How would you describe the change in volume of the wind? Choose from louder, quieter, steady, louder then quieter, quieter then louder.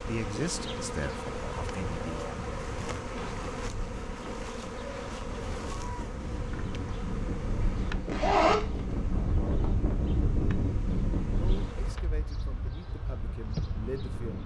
louder then quieter.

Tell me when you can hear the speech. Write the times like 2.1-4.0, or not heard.
0.0-2.2, 11.4-14.4.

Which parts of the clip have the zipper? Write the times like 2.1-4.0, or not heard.
7.7-8.8.